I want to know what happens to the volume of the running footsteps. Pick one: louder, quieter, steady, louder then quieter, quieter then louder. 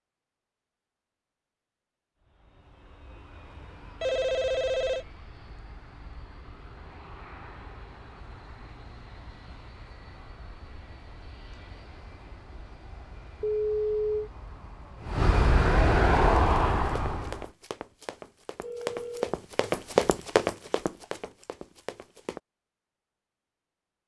louder then quieter.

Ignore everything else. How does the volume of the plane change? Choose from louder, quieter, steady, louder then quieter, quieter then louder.
louder.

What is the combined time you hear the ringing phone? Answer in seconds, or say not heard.
3 s.